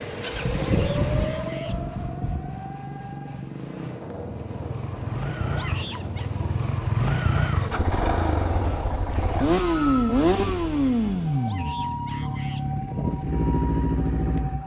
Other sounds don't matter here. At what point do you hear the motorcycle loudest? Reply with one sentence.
The volume of the motorcycle peaks at 10 seconds.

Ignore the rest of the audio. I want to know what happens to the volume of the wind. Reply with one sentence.
The volume of the wind goes down.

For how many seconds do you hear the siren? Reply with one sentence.
You can hear the siren for 10 seconds altogether.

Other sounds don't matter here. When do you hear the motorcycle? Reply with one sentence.
The motorcycle can be heard from 0.0 to 14.6 s.